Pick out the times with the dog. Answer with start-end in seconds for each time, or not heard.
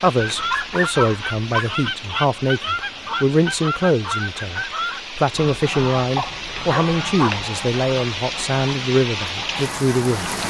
0.3-1.7, 6.2-7.5.